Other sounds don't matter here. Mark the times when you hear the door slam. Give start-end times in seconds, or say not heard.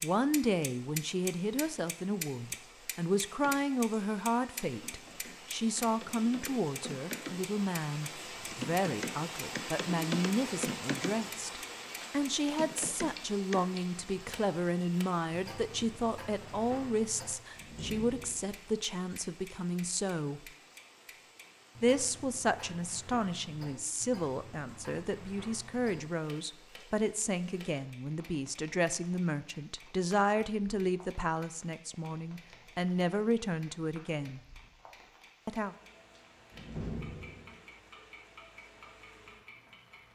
17.6-18.6, 36.5-37.6.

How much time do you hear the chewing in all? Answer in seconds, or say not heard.
not heard.